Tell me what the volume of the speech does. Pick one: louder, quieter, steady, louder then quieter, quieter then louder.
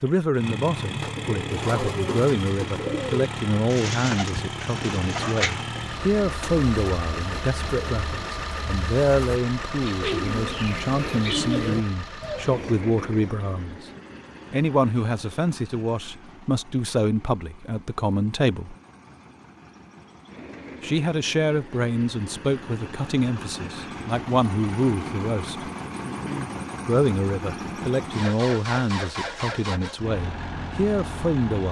steady.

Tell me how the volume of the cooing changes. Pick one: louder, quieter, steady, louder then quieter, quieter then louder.
quieter then louder.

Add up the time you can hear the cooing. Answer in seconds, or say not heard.
12 s.